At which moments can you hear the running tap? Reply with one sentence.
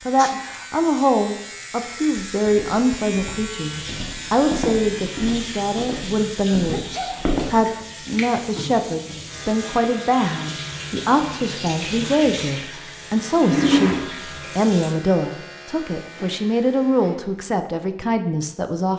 You can hear the running tap from 3.5 to 14.9 s.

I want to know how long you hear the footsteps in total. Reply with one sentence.
You can hear the footsteps for 5 seconds altogether.